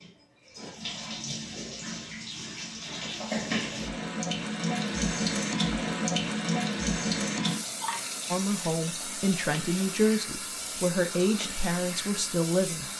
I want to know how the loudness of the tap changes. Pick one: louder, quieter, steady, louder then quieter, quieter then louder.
louder then quieter.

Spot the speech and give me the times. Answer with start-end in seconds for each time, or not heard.
8.3-12.9.